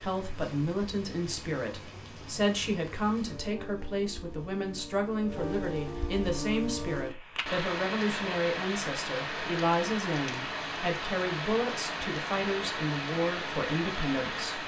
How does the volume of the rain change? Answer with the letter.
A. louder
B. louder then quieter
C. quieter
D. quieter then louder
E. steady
A.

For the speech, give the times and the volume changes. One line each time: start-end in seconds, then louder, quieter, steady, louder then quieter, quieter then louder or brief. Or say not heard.
0.0-14.6 steady.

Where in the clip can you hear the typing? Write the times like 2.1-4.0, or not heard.
not heard.